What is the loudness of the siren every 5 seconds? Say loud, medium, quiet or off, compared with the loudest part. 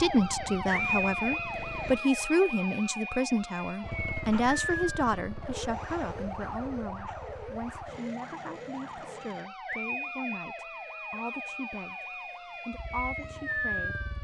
loud, medium, loud.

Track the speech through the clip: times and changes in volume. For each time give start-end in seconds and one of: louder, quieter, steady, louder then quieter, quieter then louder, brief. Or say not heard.
0.0-14.0 quieter.